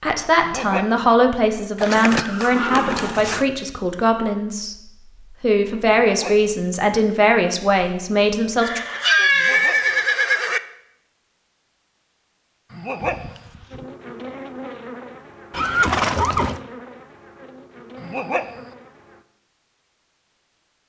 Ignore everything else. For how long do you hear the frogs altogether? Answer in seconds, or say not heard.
not heard.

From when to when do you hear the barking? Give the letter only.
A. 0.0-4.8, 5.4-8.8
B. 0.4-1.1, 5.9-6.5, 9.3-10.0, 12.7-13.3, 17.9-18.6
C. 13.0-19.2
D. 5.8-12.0
B.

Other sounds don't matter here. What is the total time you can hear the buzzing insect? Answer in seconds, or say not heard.
6 s.